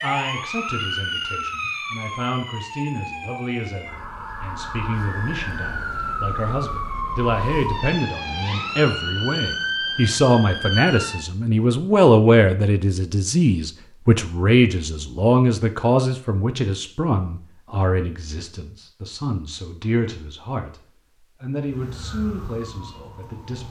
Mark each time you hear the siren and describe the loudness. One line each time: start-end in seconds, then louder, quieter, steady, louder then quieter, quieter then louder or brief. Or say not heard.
0.0-11.3 quieter then louder
21.6-23.6 brief.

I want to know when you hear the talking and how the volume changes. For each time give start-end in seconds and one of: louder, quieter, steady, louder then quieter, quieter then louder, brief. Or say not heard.
0.0-23.6 louder then quieter.